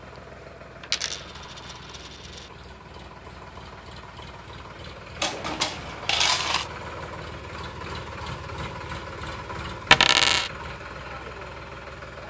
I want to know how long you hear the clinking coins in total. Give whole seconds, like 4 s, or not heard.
4 s.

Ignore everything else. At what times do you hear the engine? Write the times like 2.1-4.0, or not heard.
0.0-12.2.